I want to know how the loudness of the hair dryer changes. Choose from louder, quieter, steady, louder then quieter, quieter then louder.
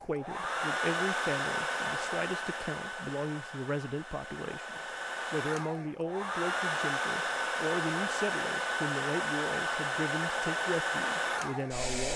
quieter then louder.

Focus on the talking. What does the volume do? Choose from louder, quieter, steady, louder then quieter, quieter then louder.
steady.